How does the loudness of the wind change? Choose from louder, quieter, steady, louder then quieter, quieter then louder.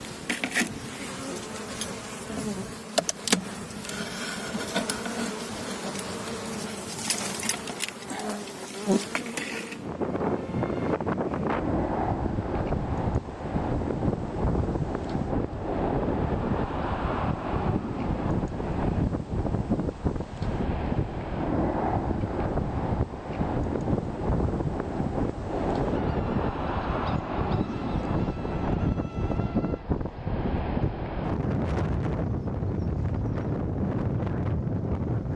louder.